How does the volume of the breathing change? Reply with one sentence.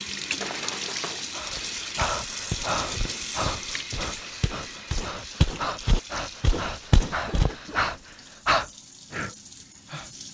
The volume of the breathing goes down, then up.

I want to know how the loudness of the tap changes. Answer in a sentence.
The loudness of the tap goes down.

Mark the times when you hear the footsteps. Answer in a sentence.
The footsteps can be heard from 1.5 to 7.5 s.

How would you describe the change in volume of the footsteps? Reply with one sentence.
The loudness of the footsteps goes down, then up.